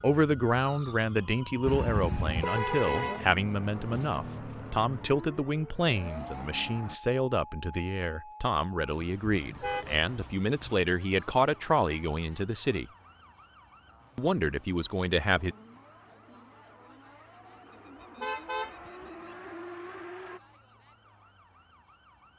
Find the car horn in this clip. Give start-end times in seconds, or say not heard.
1.6-3.2, 9.3-10.8, 18.0-19.4.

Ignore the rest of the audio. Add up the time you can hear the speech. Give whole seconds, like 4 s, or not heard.
14 s.